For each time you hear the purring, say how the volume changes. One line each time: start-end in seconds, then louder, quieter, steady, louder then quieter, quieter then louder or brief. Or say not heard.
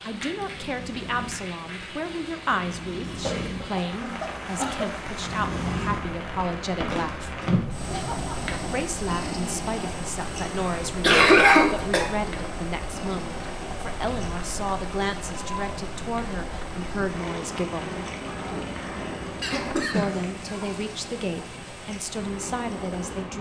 0.1-23.3 louder then quieter.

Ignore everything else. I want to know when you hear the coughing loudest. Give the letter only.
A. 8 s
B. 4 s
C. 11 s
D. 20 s
C.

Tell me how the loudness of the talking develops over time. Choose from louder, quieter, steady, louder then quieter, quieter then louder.
steady.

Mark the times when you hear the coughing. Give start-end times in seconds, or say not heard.
3.2-4.8, 10.7-12.1, 19.4-20.8.